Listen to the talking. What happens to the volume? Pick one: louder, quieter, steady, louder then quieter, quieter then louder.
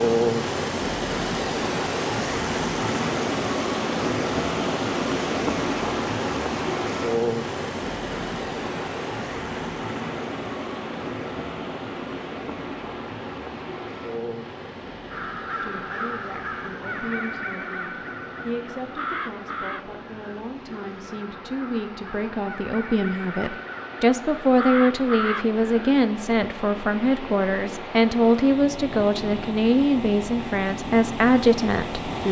louder.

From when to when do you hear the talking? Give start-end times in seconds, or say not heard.
15.6-32.2.